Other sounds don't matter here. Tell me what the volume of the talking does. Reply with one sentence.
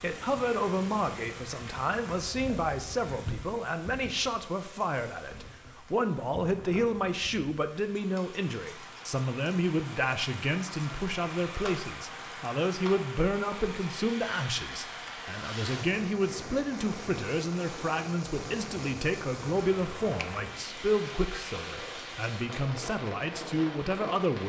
The volume of the talking stays about the same.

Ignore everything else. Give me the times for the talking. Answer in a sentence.
The talking can be heard from 0.0 to 24.4 s.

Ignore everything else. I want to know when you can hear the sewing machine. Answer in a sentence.
The sewing machine can't be heard in this clip.